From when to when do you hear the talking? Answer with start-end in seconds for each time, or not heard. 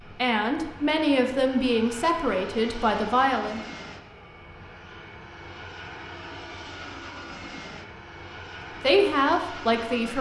0.1-3.6, 8.8-10.1.